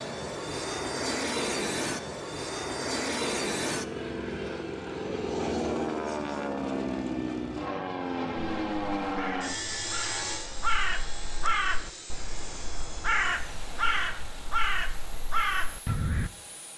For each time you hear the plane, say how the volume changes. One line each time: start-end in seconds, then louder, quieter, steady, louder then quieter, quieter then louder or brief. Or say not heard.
0.0-16.7 quieter.